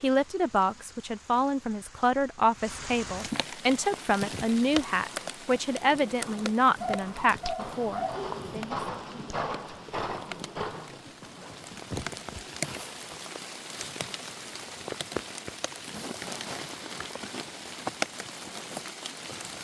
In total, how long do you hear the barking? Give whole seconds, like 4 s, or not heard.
2 s.